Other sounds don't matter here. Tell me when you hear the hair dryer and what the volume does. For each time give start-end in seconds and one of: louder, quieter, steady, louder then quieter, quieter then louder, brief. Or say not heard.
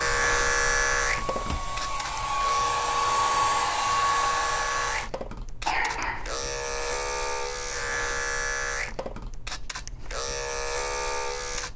0.0-5.1 louder.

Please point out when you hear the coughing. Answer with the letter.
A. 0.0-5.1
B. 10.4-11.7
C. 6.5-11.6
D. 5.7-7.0
D.